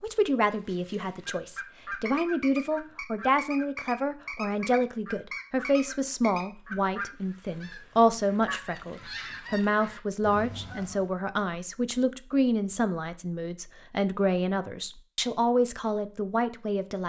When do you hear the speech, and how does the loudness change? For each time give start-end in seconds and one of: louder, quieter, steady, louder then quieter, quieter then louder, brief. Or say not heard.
0.0-17.0 steady.